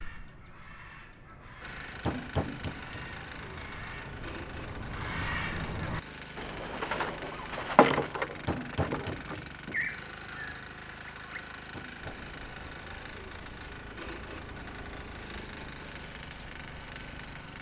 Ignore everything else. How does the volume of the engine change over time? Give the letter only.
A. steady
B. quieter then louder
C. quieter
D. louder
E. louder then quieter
A.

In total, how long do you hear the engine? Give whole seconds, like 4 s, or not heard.
16 s.